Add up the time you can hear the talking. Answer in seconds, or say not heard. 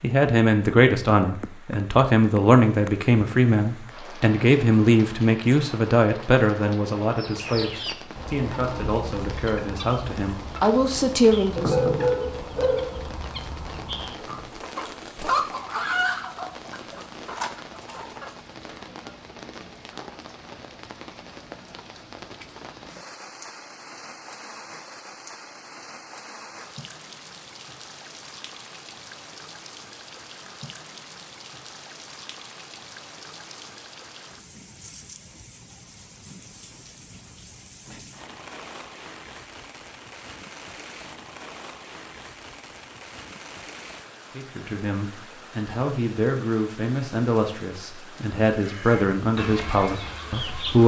18 s.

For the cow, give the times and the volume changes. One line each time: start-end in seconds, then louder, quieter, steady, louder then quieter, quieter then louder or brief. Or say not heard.
not heard.